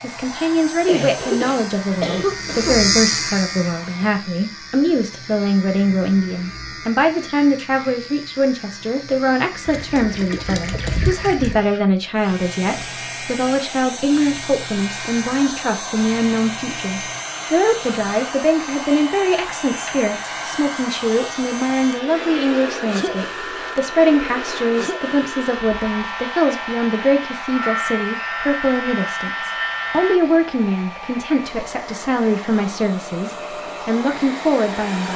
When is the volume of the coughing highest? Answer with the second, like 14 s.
2 s.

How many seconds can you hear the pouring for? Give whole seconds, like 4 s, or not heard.
2 s.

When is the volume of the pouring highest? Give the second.
11 s.